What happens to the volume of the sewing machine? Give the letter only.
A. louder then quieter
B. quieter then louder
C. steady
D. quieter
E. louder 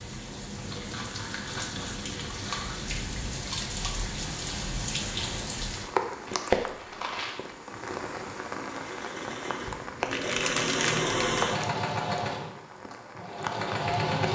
A.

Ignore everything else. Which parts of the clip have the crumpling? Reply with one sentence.
You can hear the crumpling from 0.7 to 2.8 s, from 6.2 to 7.4 s and from 10.1 to 11.4 s.